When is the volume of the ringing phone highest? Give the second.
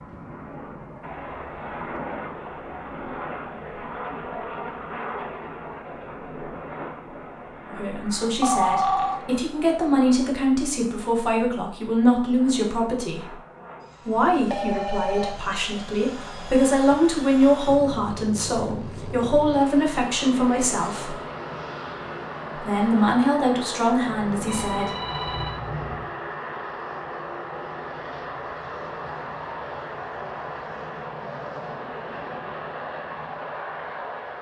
9 s.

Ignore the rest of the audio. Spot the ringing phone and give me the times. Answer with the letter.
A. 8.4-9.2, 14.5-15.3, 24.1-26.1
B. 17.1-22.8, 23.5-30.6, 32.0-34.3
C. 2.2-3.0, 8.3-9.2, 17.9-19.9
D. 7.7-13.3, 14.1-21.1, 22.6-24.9
A.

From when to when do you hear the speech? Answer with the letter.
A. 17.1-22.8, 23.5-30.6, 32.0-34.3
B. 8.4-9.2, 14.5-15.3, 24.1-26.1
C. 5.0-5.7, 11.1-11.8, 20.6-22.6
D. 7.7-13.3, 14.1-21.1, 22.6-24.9
D.